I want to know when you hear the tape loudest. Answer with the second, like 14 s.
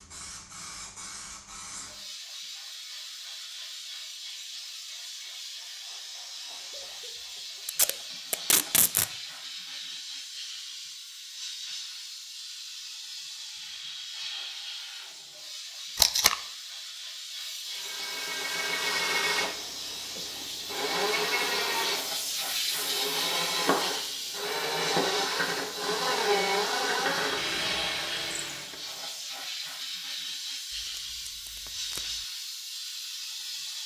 16 s.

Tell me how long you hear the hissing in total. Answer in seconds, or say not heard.
34 s.